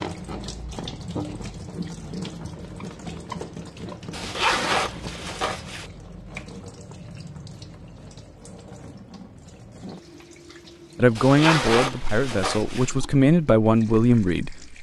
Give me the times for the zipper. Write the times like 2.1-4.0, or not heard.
4.1-5.9, 11.2-12.9.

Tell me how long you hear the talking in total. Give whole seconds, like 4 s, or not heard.
4 s.